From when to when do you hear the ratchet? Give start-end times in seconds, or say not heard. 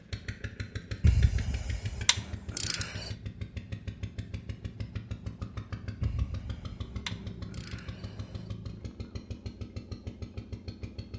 1.0-3.1, 6.0-8.6.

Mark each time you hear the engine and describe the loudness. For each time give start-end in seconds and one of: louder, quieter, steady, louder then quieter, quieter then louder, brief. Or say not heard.
0.0-11.1 steady.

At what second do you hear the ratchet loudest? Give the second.
1 s.